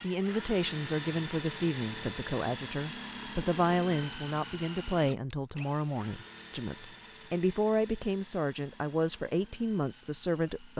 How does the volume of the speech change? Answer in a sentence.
The loudness of the speech stays about the same.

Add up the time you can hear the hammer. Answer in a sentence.
You can't hear the hammer here.